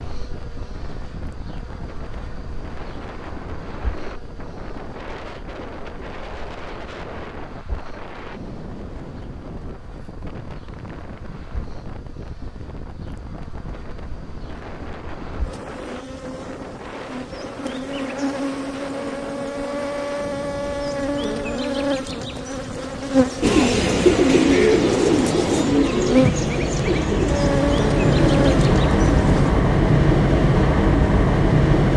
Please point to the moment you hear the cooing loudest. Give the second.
24 s.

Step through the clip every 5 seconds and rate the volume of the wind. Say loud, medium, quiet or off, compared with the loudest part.
quiet, quiet, quiet, quiet, quiet, loud, loud.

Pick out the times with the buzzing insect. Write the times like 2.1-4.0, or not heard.
0.0-29.5.